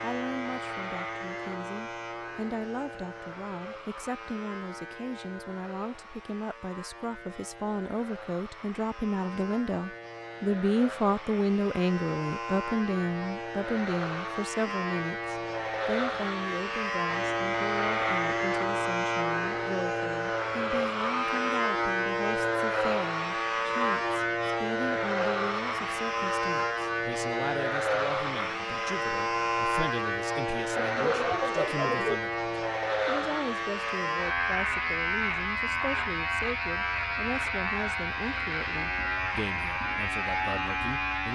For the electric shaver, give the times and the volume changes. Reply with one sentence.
The electric shaver can be heard from 0.0 to 41.3 s, getting louder.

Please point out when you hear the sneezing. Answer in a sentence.
You can hear the sneezing from 30.9 to 32.2 s.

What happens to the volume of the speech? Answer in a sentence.
The loudness of the speech goes up, then down.